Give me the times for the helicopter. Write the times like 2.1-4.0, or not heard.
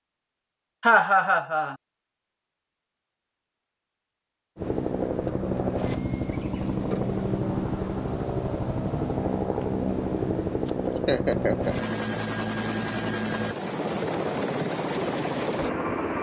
4.5-16.1.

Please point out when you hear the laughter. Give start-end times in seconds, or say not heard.
0.8-1.8, 10.7-11.8.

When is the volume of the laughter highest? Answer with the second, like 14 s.
1 s.